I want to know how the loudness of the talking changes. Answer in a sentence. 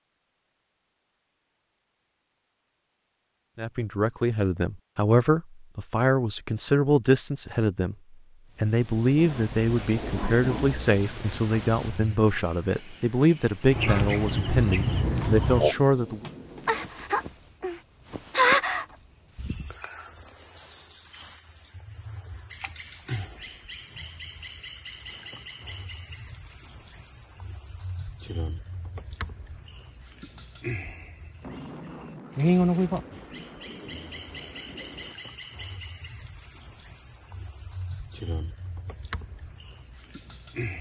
The loudness of the talking stays about the same.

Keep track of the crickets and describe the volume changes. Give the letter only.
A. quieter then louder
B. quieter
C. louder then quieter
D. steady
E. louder
D.